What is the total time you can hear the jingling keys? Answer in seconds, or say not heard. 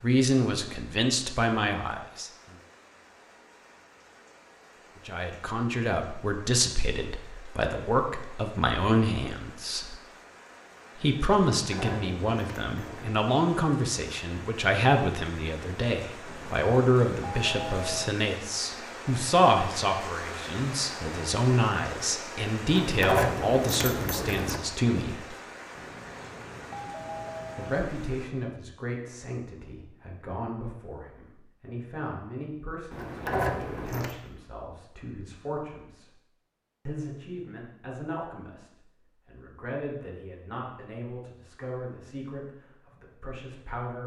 5 s.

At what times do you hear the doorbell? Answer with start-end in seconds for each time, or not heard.
16.2-18.1, 25.8-27.8.